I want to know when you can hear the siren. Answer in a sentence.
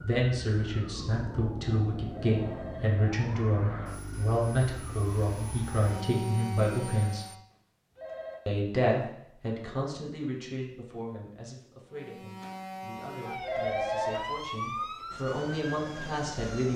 You can hear the siren from 0.0 to 7.5 s and from 11.9 to 16.7 s.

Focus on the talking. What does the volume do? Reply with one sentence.
The volume of the talking goes down, then up.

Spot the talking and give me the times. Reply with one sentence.
You can hear the talking from 0.0 to 7.2 s and from 8.4 to 16.7 s.